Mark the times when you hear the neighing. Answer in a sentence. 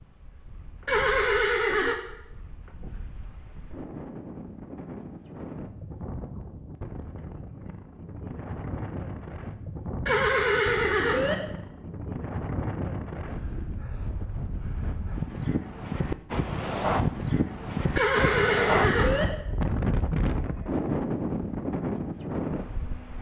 You can hear the neighing from 0.8 to 1.9 s, from 10.1 to 11.3 s and from 17.9 to 19.2 s.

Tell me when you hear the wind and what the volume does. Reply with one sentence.
The wind can be heard from 0.0 to 23.1 s, getting louder.